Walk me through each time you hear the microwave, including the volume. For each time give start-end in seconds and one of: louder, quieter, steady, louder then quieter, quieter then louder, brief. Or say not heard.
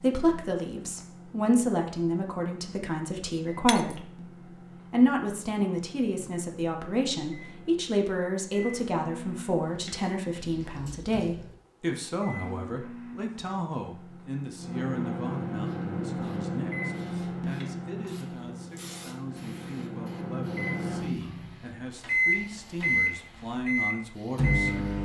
0.0-25.0 louder.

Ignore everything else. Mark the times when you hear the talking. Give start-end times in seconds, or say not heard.
0.0-4.2, 4.8-25.0.